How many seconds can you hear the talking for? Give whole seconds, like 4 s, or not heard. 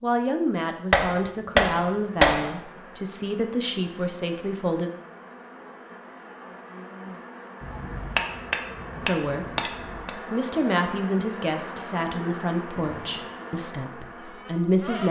11 s.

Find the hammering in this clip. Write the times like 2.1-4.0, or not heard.
0.9-2.5, 7.6-10.2.